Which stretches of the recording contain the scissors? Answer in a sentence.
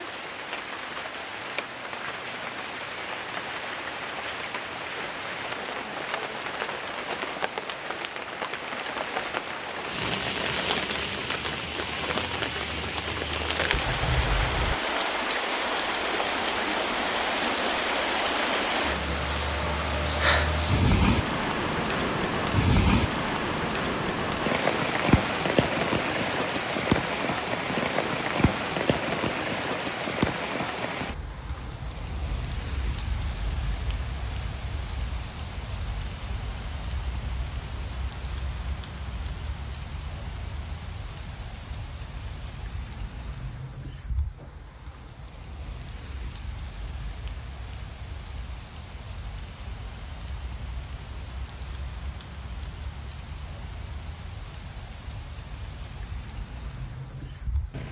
The scissors can be heard from 13.7 to 14.8 s.